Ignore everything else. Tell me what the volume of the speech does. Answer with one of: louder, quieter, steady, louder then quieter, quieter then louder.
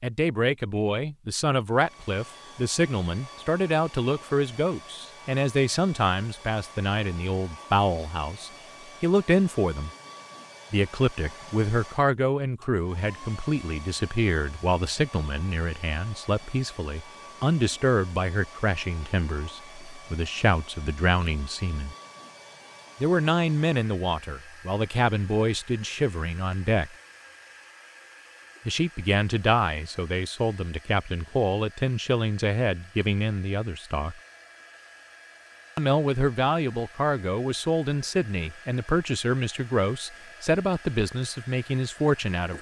steady.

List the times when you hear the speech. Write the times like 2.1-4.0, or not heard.
0.0-9.9, 10.7-21.9, 23.0-26.9, 28.6-34.2, 35.8-42.5.